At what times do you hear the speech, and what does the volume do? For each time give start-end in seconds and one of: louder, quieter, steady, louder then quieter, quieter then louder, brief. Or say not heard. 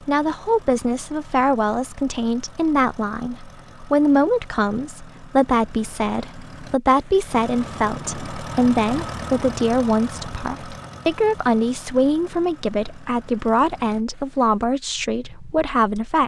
0.0-16.2 steady.